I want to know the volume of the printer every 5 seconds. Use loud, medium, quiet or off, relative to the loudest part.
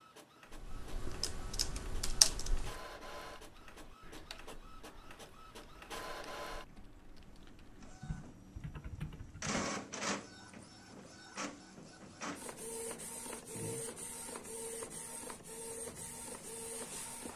medium, loud, loud, loud.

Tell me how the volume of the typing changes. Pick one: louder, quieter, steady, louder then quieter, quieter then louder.
quieter then louder.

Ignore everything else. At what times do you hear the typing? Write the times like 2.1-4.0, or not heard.
0.5-9.6.